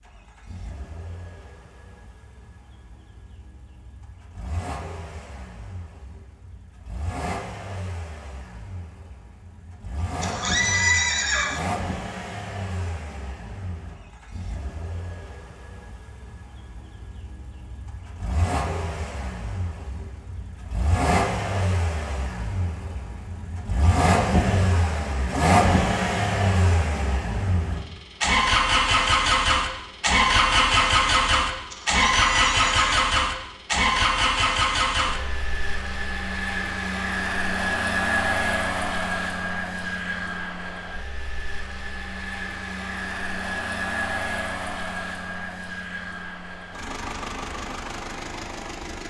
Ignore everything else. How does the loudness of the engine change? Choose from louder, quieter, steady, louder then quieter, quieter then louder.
louder then quieter.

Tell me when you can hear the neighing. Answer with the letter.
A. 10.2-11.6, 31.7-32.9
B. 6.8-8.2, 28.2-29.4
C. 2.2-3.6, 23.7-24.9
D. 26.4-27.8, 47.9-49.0
A.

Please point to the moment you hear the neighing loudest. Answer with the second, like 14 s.
11 s.